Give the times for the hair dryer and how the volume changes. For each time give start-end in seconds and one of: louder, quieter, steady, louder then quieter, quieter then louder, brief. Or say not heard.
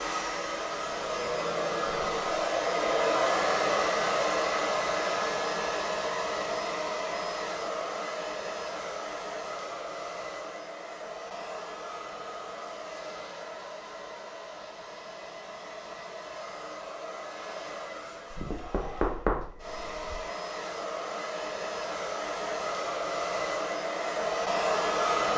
0.0-25.3 quieter then louder.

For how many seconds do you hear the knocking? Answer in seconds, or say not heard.
2 s.